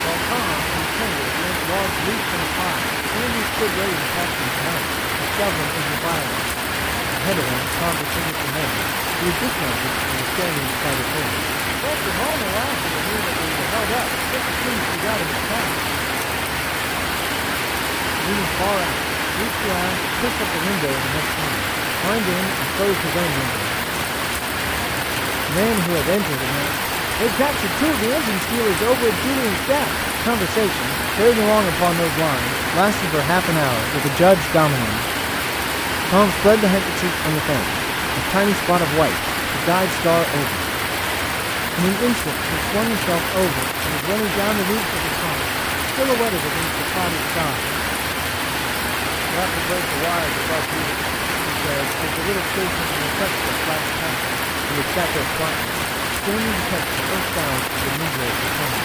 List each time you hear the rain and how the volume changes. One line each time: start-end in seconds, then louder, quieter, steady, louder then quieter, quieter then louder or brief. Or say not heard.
0.0-58.8 steady.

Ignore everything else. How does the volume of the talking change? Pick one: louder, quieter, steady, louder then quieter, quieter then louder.
louder then quieter.